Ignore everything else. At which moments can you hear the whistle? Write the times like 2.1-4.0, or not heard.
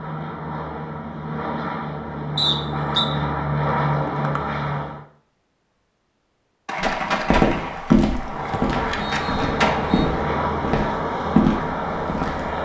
2.4-3.1, 7.9-10.1.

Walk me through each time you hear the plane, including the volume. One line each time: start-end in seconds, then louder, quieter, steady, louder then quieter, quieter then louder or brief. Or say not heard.
0.0-5.0 louder
8.2-12.6 steady.